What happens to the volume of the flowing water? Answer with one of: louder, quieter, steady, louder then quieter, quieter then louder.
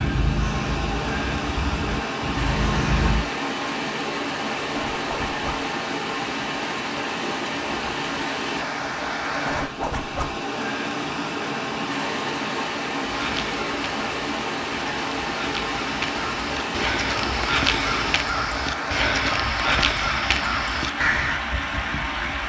steady.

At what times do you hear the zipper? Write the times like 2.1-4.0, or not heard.
4.9-5.7, 9.4-10.4, 19.3-20.0.